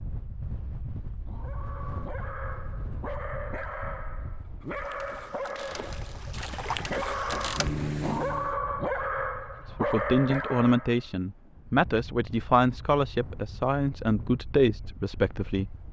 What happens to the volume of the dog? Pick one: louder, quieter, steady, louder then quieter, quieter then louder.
louder.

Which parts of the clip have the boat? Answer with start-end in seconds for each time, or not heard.
4.7-8.6.